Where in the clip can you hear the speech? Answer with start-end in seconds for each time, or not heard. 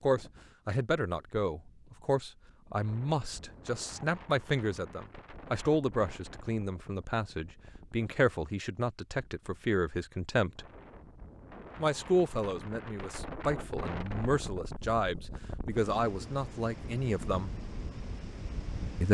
0.0-10.7, 11.8-17.5.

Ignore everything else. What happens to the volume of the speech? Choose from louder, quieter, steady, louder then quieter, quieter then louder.
steady.